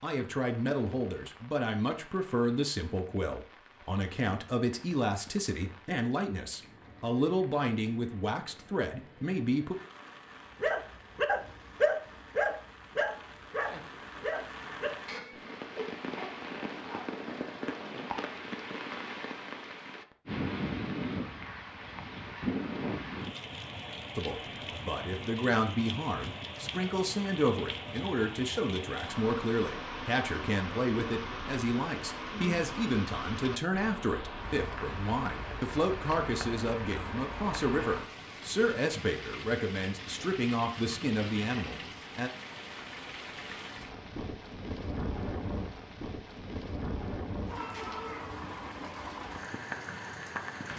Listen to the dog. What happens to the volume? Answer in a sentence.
The loudness of the dog goes down.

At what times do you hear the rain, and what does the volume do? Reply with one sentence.
The rain can be heard from 0.0 to 50.7 s, getting louder.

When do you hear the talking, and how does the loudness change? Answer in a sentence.
You can hear the talking from 0.0 to 9.8 s, at a steady volume; and from 24.1 to 42.3 s, at a steady volume.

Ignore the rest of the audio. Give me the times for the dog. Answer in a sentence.
You can hear the dog from 10.6 to 17.2 s.